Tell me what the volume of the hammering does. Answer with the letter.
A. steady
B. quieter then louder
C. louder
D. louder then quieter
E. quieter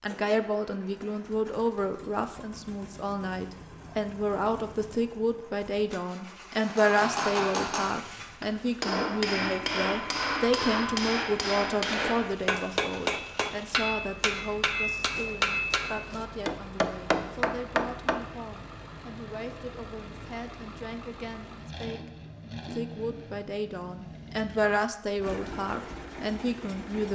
A.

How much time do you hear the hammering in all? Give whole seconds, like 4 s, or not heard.
12 s.